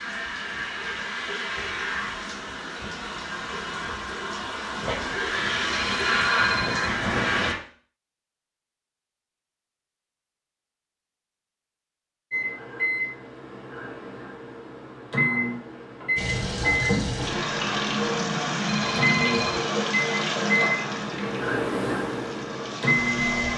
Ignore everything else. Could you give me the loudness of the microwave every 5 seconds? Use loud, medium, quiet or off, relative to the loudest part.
off, off, medium, loud, loud.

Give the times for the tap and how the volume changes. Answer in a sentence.
You can hear the tap from 0.0 to 7.5 s, getting louder; and from 16.1 to 23.5 s, getting quieter.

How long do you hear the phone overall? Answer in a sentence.
The phone can be heard for 3 seconds in total.